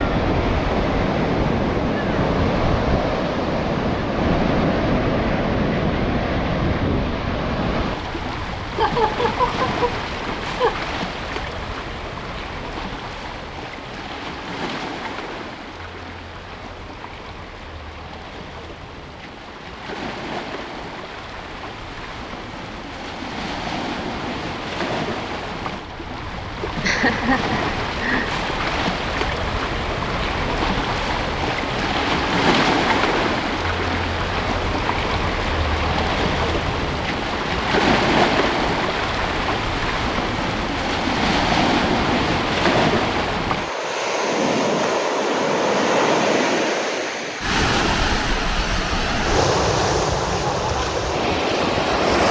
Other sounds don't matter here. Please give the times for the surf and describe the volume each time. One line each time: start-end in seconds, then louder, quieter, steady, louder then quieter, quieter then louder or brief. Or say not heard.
0.0-52.2 quieter then louder.